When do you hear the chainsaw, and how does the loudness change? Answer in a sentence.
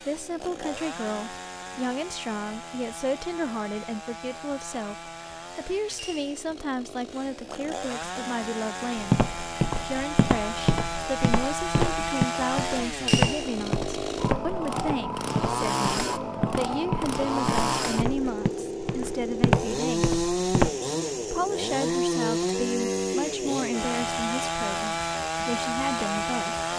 You can hear the chainsaw from 0.0 to 26.7 s, getting louder.